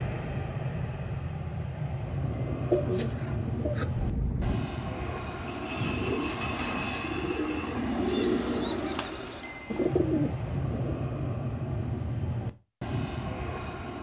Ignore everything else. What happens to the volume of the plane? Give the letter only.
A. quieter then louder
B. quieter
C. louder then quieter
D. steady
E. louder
D.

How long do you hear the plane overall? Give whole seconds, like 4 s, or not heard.
14 s.